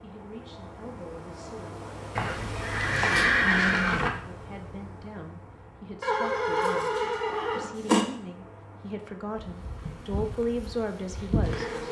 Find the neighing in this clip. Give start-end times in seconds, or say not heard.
2.1-4.1, 6.0-8.1.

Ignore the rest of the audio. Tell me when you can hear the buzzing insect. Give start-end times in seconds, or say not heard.
9.3-11.8.